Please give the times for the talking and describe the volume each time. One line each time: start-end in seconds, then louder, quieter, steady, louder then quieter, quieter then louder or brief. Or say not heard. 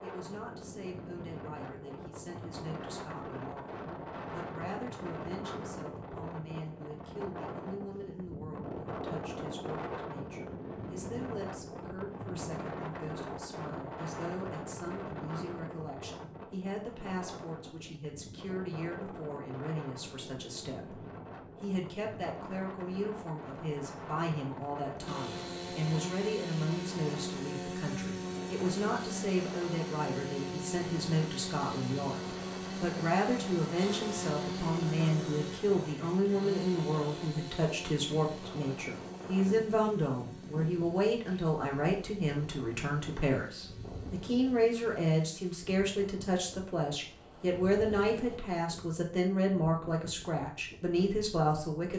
0.0-51.9 louder.